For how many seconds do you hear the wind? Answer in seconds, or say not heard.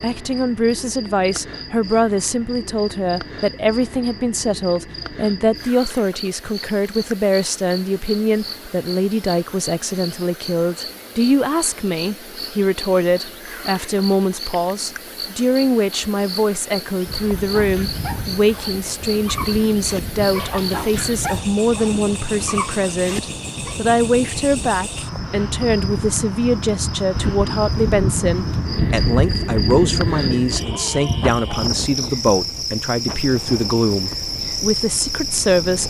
19 s.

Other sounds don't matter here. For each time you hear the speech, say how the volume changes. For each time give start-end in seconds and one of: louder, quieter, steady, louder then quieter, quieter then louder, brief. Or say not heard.
0.0-35.8 steady.